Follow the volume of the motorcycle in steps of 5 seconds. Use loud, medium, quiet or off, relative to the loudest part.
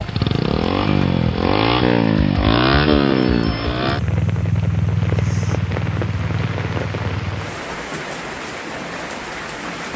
loud, medium.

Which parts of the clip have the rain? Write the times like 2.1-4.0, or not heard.
0.0-9.9.